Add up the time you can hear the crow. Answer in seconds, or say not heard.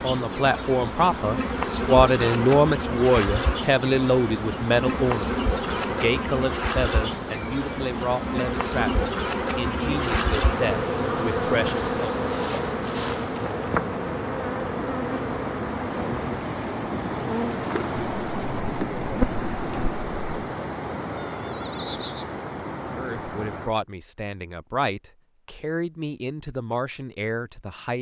not heard.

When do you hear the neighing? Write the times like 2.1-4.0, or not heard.
21.1-22.4.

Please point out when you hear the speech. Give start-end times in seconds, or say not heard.
0.0-12.1, 22.9-27.9.